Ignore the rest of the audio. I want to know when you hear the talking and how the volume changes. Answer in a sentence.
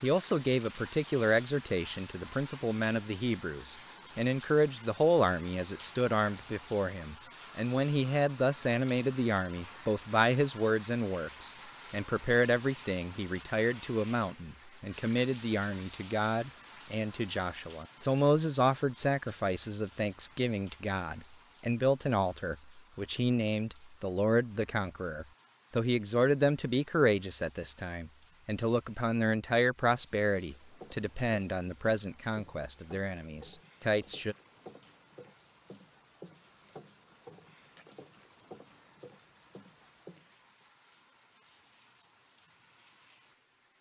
You can hear the talking from 0.0 to 34.4 s, at a steady volume.